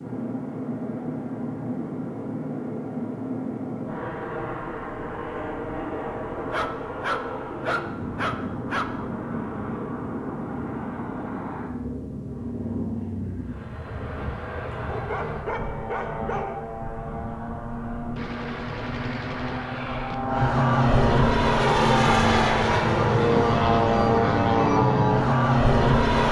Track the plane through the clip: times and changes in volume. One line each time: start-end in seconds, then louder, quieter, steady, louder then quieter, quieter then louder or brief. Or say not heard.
0.0-26.2 louder.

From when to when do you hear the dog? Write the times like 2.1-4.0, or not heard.
6.3-8.8, 14.9-16.6.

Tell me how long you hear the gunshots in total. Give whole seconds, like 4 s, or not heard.
2 s.